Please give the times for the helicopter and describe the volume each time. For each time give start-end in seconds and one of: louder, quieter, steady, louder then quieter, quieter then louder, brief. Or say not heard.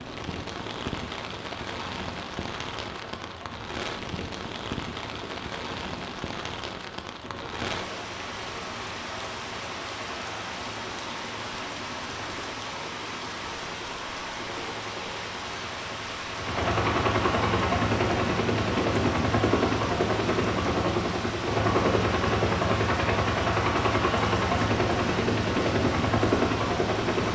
0.0-27.3 louder.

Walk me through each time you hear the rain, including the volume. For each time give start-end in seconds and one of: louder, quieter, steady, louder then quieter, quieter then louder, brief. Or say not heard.
0.0-27.3 steady.